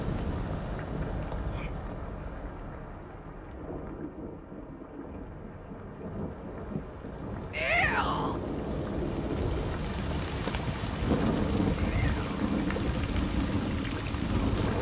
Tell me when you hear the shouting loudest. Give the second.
8 s.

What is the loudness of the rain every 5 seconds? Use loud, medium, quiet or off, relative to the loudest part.
medium, medium, loud.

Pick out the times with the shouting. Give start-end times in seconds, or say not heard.
1.4-1.8, 7.5-8.3, 11.8-12.4.